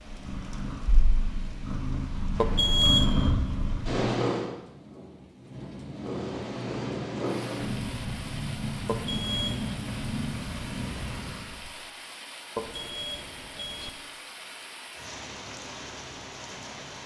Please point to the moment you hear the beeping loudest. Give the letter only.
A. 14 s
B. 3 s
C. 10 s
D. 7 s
B.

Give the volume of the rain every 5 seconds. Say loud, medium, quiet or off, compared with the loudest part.
medium, loud, loud, loud.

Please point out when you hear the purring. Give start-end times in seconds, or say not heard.
0.0-4.5, 5.9-11.7.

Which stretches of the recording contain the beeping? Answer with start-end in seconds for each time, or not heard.
2.4-3.4, 8.8-9.8, 12.6-13.9.